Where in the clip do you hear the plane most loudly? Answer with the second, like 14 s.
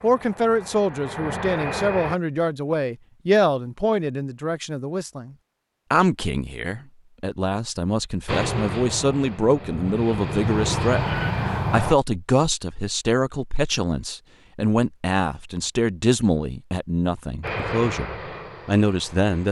11 s.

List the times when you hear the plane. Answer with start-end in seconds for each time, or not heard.
0.0-2.2, 8.2-11.9, 17.4-19.4.